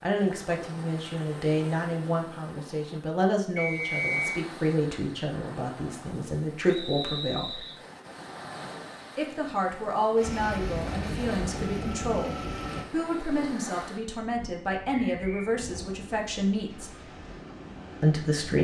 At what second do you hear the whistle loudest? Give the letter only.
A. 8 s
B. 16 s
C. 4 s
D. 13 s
C.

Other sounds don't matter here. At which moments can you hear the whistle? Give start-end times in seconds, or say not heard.
3.5-4.4, 6.7-7.8, 15.1-15.5.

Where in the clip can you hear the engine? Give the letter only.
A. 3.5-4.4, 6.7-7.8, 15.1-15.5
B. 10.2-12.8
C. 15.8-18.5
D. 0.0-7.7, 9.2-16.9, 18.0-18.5
B.